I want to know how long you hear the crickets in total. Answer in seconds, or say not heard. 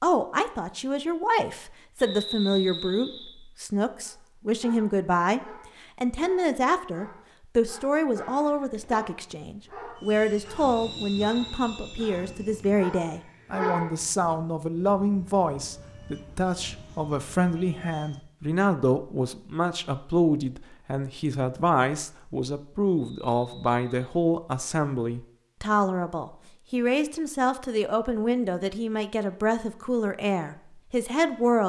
not heard.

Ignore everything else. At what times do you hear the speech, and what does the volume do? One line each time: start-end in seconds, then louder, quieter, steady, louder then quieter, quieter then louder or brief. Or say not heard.
0.0-31.6 steady.